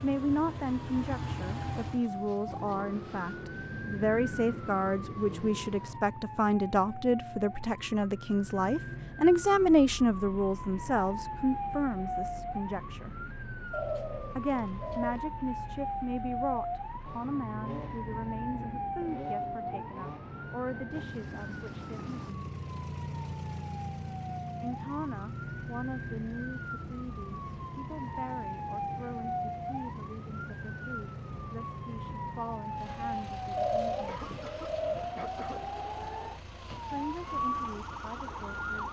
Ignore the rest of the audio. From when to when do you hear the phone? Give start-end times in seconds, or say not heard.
not heard.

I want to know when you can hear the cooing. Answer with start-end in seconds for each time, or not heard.
13.7-15.2, 33.5-35.1.